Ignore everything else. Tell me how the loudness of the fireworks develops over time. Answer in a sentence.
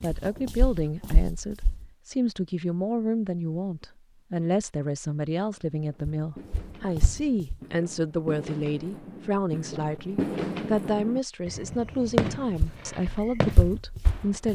The volume of the fireworks goes up, then down.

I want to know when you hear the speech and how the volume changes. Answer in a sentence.
The speech can be heard from 0.0 to 14.4 s, at a steady volume.